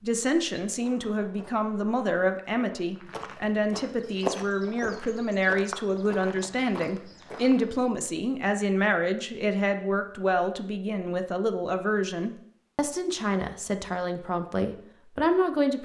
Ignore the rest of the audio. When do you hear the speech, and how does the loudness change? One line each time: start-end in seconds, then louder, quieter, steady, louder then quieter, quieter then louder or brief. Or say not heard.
0.0-15.7 steady.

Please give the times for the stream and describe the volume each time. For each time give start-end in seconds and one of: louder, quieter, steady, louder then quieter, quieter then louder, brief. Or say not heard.
not heard.